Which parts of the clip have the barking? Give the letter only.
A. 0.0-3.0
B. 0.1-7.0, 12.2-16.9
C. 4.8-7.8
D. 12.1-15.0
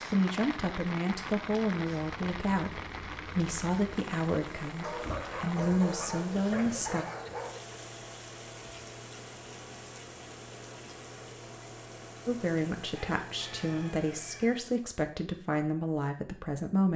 C.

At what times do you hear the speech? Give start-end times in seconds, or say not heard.
0.1-7.0, 12.2-16.9.